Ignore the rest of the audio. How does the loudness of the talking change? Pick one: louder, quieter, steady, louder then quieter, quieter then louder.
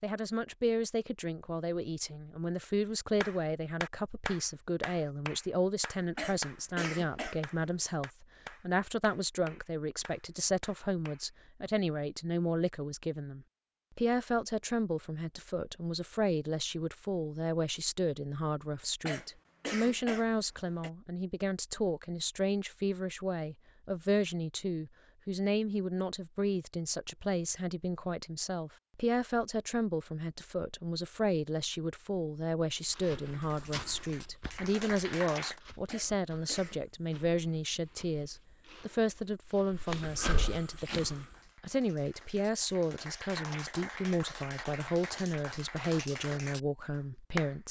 steady.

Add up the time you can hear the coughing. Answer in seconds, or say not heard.
4 s.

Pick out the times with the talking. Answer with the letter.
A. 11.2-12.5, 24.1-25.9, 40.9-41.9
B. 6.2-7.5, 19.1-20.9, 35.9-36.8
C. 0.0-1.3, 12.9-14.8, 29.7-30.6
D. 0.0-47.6
D.